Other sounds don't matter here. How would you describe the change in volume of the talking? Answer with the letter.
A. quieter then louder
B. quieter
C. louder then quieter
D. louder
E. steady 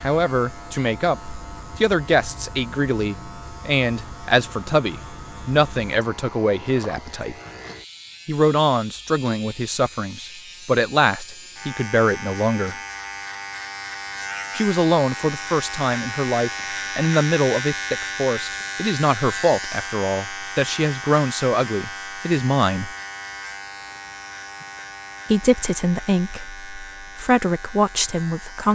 E.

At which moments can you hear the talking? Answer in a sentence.
The talking can be heard from 0.0 to 7.3 s, from 8.2 to 12.8 s, from 14.6 to 22.9 s and from 25.3 to 28.6 s.